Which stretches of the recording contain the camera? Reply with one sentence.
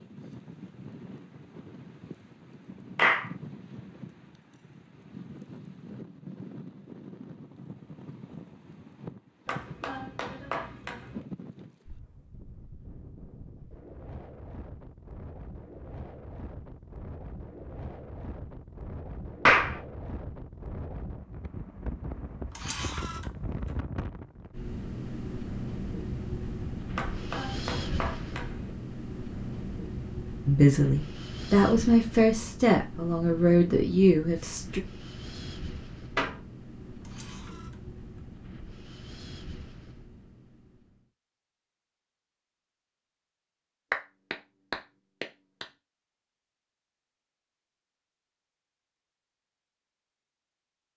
The camera can be heard from 22.6 to 23.2 s and from 37.0 to 37.8 s.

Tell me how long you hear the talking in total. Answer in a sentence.
You can hear the talking for 4 seconds altogether.